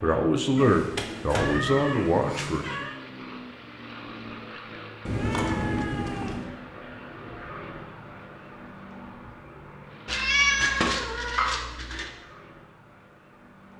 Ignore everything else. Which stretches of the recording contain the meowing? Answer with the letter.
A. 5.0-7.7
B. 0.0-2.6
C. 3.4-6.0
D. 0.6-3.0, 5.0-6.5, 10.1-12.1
D.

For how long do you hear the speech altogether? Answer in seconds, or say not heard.
3 s.